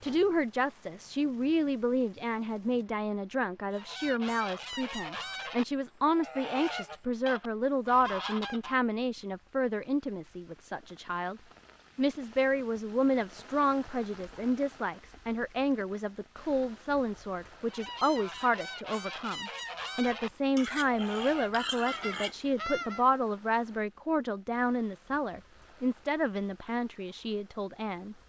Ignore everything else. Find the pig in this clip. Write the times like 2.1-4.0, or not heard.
20.6-22.5.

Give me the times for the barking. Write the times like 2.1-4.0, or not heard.
not heard.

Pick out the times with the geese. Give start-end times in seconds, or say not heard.
3.7-8.8, 17.6-23.1.